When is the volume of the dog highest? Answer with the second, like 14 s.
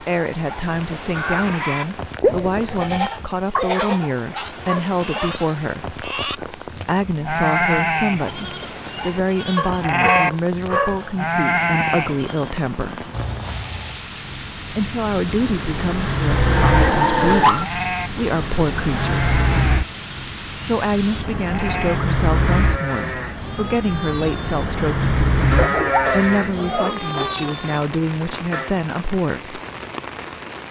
17 s.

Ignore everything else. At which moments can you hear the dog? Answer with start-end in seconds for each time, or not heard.
3.5-5.4, 9.6-11.2, 16.3-17.6, 25.6-27.4.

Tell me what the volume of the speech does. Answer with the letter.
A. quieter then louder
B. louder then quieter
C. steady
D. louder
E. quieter
C.